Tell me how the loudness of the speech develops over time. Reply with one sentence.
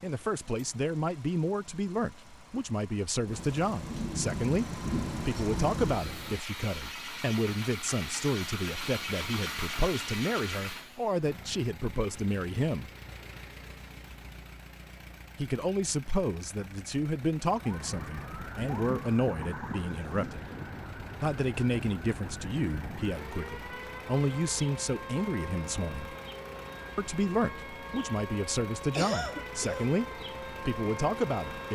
The volume of the speech stays about the same.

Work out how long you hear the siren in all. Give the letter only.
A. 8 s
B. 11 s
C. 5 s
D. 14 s
D.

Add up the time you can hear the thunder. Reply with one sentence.
The thunder can be heard for 5 seconds in total.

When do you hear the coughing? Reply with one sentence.
You can hear the coughing from 28.9 to 29.9 s.